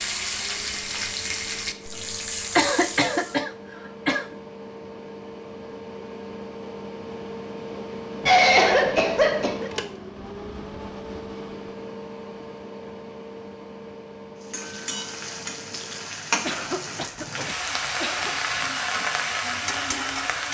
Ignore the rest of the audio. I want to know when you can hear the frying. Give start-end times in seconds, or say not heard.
0.0-3.4, 14.4-20.4.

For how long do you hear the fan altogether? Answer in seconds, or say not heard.
16 s.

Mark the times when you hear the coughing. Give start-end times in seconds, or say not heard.
2.5-4.3, 8.2-9.7, 16.4-18.4.